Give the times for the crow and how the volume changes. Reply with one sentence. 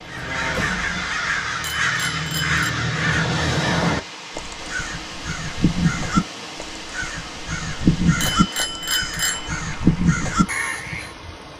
The crow can be heard from 0.1 to 11.1 s, at a steady volume.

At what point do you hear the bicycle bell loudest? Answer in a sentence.
The volume of the bicycle bell peaks at 9 seconds.